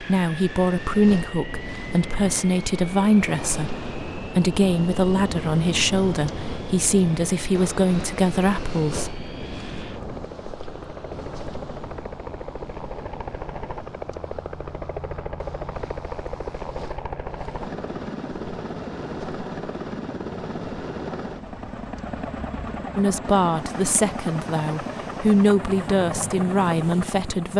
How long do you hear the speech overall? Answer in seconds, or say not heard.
14 s.